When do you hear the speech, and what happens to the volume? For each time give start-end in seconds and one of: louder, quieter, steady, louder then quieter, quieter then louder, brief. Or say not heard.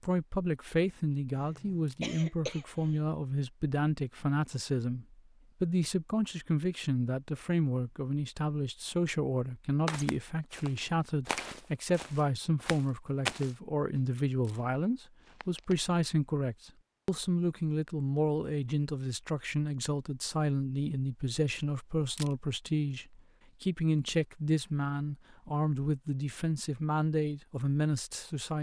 0.0-28.5 steady.